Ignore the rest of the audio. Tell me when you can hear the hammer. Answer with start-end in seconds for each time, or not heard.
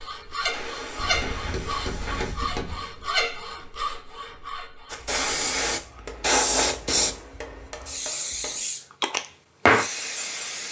0.9-2.9, 6.0-8.7.